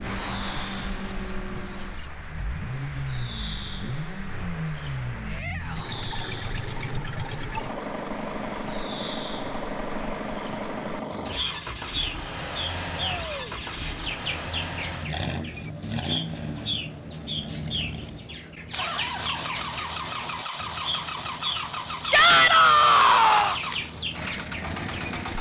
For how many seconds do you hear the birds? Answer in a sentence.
The birds can be heard for 25 seconds in total.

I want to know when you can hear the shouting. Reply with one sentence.
You can hear the shouting from 5.2 to 6.0 s, from 13.1 to 13.5 s and from 22.1 to 23.6 s.